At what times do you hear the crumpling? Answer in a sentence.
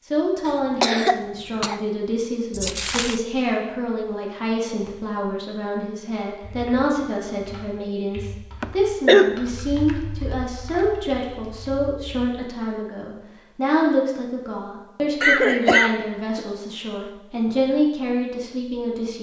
You can hear the crumpling from 2.5 to 3.2 s.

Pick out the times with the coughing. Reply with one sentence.
You can hear the coughing from 0.5 to 1.8 s, from 8.6 to 9.3 s and from 15.2 to 16.4 s.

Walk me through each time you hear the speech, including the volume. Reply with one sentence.
You can hear the speech from 0.1 to 19.1 s, at a steady volume.